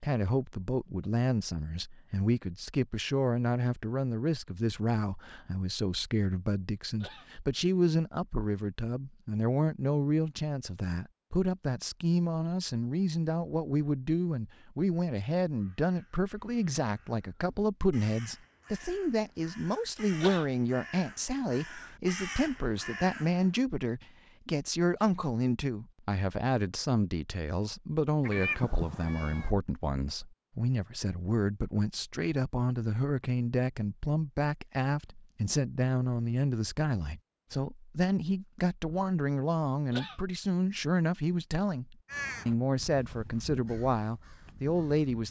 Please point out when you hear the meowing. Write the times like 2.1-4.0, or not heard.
28.2-29.5.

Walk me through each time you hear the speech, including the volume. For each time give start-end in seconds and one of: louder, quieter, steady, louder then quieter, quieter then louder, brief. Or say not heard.
0.0-45.2 steady.